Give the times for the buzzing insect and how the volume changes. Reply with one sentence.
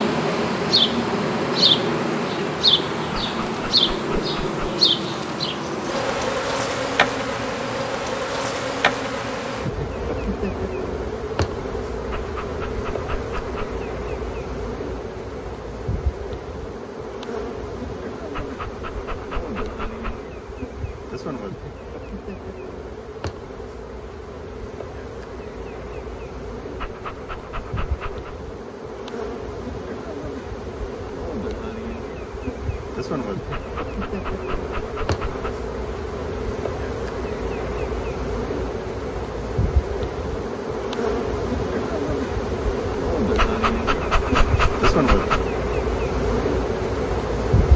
The buzzing insect can be heard from 0.0 to 47.7 s, getting quieter then louder.